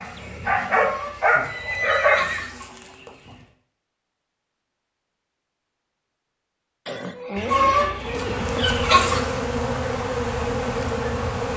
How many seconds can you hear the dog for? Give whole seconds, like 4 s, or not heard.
2 s.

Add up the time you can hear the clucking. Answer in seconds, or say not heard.
5 s.